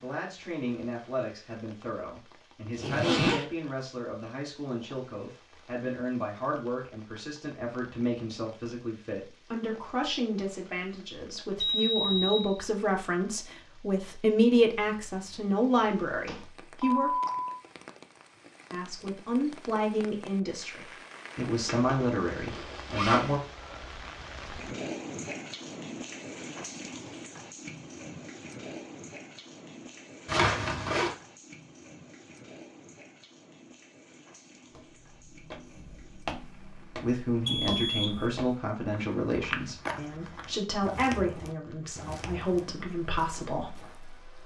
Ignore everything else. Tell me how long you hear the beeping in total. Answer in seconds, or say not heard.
3 s.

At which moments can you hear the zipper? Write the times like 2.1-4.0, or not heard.
2.7-3.5, 21.6-23.4, 30.2-31.1.